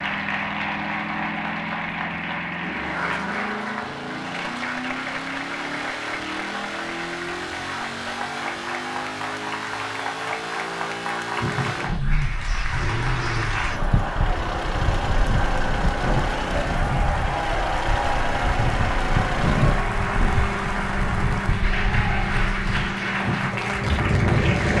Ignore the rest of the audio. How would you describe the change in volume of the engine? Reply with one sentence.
The loudness of the engine stays about the same.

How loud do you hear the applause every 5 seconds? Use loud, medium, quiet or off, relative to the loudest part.
loud, medium, loud, loud, loud.